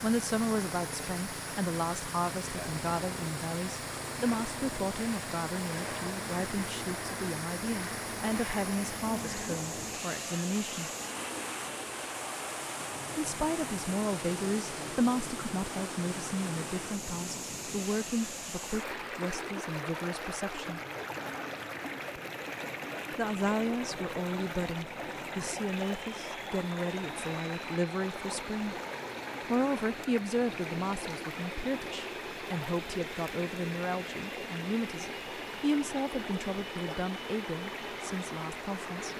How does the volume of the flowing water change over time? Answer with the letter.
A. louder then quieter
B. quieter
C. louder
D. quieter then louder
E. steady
E.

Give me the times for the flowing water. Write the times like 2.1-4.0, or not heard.
0.0-39.1.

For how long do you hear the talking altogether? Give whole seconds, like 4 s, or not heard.
34 s.